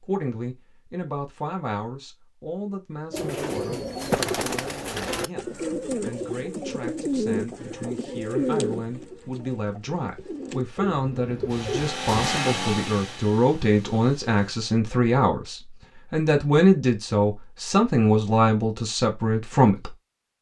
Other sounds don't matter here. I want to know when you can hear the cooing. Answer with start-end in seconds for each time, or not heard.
3.1-12.4.